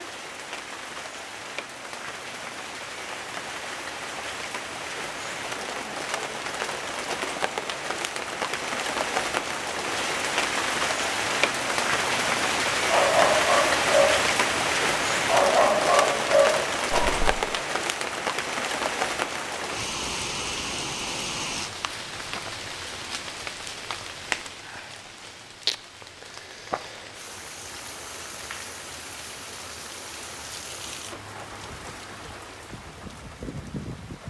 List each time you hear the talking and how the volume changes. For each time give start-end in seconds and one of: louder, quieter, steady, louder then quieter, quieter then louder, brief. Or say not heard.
not heard.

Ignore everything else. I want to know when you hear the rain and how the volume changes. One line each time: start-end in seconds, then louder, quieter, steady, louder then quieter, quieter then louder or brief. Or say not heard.
0.0-34.2 louder then quieter.